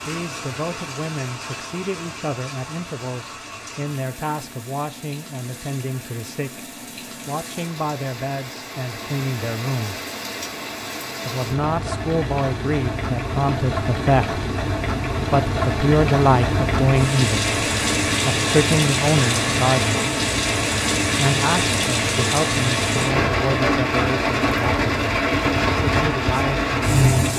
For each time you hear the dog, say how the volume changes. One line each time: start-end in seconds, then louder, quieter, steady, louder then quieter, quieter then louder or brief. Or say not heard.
not heard.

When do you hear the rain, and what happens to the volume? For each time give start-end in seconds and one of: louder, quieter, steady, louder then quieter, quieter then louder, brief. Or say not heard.
0.0-27.3 louder.